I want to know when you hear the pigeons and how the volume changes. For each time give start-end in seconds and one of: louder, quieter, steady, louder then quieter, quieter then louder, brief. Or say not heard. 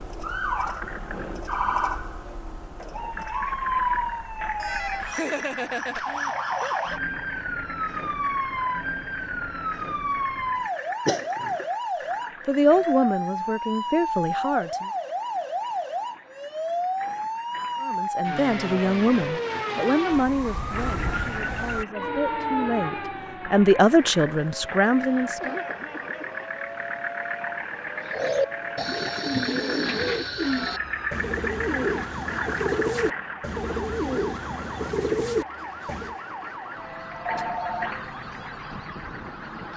27.9-36.1 steady.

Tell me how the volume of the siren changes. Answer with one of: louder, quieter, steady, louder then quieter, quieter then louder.
quieter.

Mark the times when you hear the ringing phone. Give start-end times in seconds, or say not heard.
4.5-6.0, 37.1-37.9.